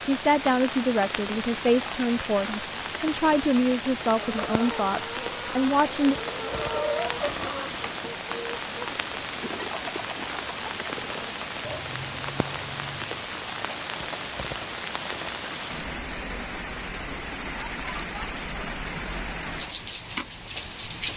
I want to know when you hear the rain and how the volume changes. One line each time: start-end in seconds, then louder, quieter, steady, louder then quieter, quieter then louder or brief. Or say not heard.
0.0-21.1 steady.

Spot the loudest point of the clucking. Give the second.
7 s.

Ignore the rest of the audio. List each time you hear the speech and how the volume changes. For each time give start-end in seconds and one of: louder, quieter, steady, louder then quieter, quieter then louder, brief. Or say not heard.
0.0-6.2 steady.